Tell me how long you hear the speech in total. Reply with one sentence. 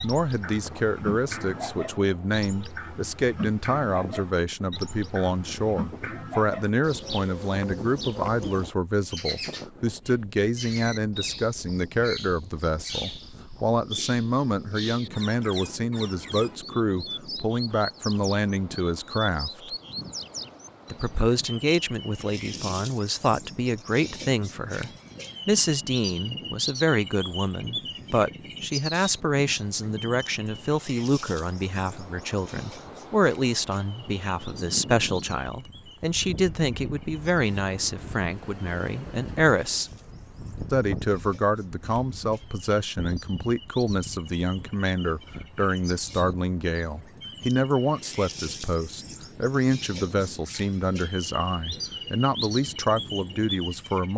The speech can be heard for 52 seconds in total.